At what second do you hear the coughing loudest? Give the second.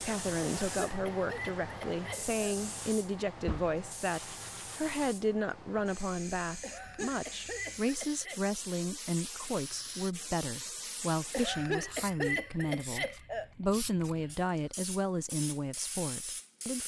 12 s.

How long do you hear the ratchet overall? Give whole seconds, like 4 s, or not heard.
not heard.